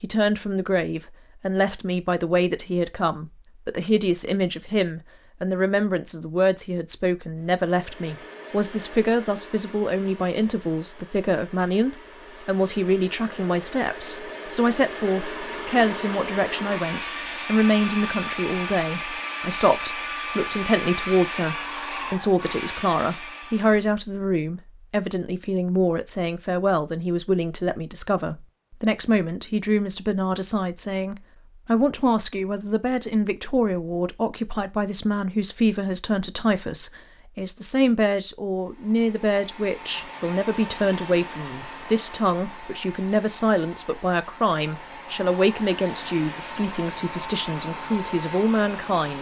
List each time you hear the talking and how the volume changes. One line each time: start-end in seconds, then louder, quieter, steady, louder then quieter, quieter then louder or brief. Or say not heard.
0.0-49.1 steady.